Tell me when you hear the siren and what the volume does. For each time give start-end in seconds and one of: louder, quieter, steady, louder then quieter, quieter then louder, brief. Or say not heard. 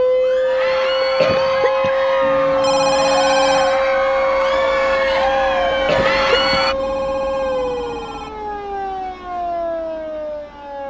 0.0-10.8 quieter.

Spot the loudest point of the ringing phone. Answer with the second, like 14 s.
3 s.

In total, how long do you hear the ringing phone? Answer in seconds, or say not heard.
3 s.